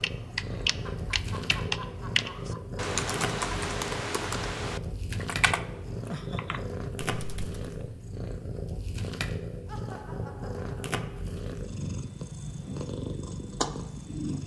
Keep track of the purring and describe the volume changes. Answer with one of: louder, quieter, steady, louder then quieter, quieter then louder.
steady.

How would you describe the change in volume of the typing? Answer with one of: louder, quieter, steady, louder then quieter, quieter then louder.
quieter.